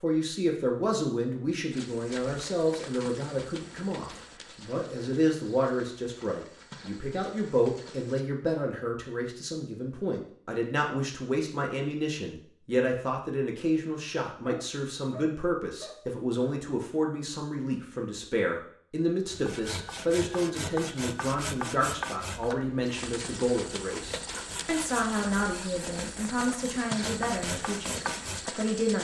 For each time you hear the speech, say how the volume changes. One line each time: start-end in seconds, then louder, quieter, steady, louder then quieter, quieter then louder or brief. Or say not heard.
0.0-28.9 steady.